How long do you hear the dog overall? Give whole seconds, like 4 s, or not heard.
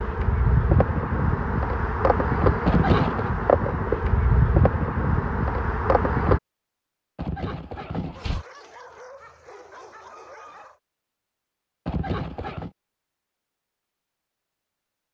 3 s.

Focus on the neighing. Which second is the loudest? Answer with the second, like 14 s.
3 s.